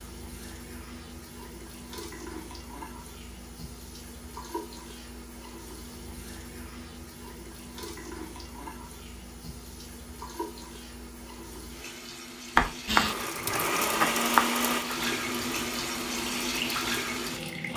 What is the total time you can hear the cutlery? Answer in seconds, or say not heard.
not heard.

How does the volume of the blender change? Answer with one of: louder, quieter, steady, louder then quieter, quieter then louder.
quieter.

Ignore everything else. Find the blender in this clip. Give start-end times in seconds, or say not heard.
12.8-17.7.